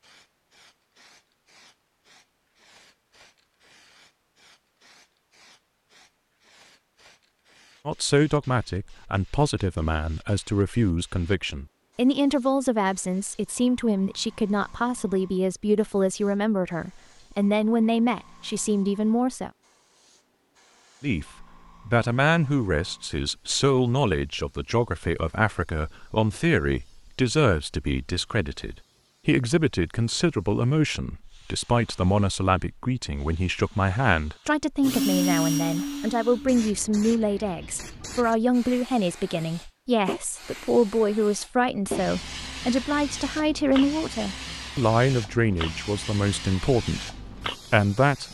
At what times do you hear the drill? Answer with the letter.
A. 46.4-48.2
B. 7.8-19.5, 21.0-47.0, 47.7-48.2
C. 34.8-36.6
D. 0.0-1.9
C.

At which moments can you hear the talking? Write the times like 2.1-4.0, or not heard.
7.8-19.5, 21.0-47.0, 47.7-48.2.